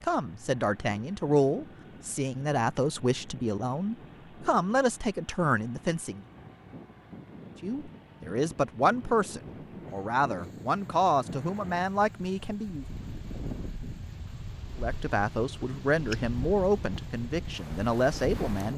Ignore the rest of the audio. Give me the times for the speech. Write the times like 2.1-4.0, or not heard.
0.0-6.2, 7.6-12.8, 14.8-18.7.